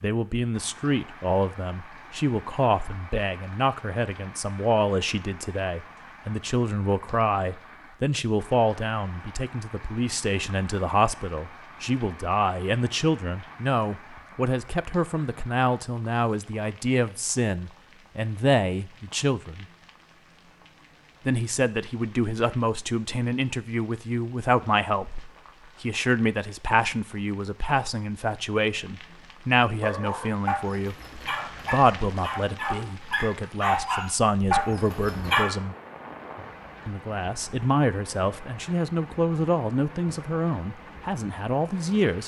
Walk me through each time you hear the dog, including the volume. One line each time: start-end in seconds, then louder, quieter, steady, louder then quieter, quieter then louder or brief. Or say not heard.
29.8-35.5 louder.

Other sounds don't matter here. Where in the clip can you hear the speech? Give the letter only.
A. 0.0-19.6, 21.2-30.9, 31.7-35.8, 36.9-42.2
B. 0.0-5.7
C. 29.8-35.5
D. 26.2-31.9
A.